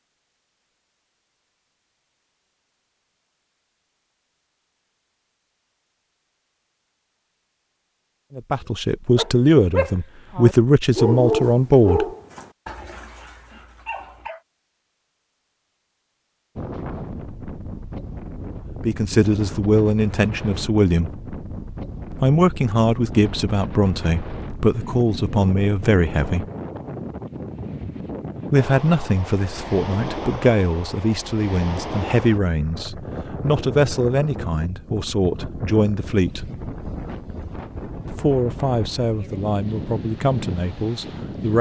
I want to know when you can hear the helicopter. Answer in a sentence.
The helicopter can't be heard in this clip.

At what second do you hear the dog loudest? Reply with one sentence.
The volume of the dog peaks at 11 seconds.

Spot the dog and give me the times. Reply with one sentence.
The dog can be heard from 8.6 to 14.4 s.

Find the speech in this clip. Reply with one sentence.
You can hear the speech from 8.3 to 12.1 s, from 18.9 to 21.1 s, from 22.1 to 26.4 s, from 28.5 to 36.5 s and from 38.0 to 41.5 s.